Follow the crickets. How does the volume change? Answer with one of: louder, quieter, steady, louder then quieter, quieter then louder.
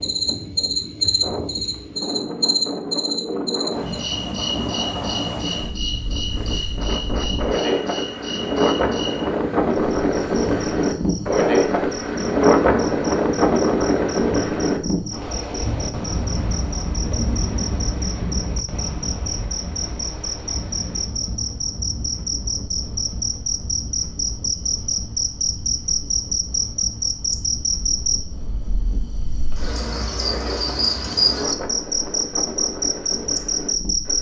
quieter then louder.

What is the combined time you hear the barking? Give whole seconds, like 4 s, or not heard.
not heard.